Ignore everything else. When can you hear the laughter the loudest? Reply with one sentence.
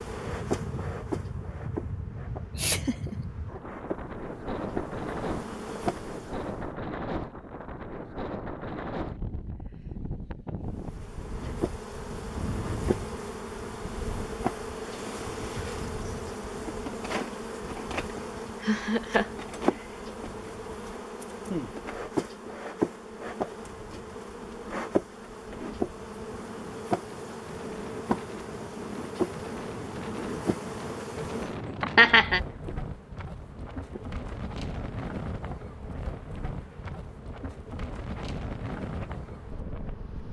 The loudest moment of the laughter is at 32 seconds.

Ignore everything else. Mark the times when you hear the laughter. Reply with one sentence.
You can hear the laughter from 2.5 to 3.6 s, from 18.1 to 19.3 s and from 31.8 to 32.4 s.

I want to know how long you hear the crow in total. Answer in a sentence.
You can't hear the crow here.